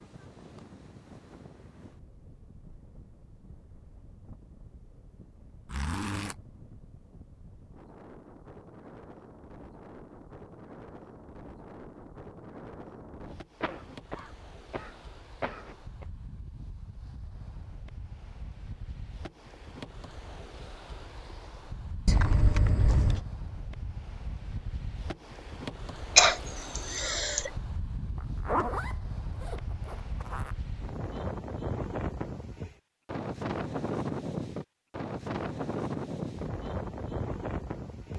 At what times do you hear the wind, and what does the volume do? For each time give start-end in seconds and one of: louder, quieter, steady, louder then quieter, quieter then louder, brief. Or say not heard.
0.0-38.1 louder.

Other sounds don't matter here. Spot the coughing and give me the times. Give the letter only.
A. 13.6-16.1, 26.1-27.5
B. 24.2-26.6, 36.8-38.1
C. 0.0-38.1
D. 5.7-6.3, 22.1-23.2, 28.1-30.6
A.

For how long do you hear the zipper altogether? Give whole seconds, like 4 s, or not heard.
4 s.